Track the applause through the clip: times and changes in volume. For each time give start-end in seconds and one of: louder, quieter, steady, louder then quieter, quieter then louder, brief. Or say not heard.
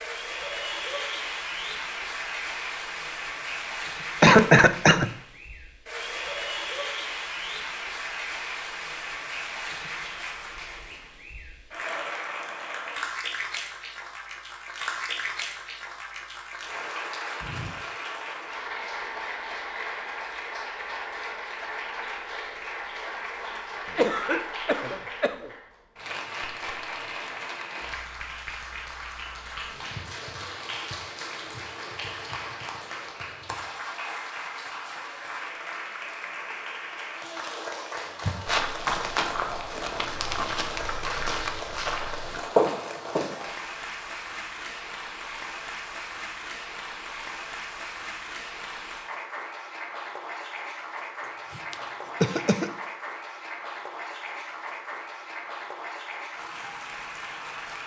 0.0-57.8 steady.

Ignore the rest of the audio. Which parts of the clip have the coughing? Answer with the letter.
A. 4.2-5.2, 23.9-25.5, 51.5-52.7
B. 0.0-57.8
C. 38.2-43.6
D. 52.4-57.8
A.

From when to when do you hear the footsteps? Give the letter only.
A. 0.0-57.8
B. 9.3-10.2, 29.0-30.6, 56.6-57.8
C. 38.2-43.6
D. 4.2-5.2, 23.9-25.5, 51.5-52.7
C.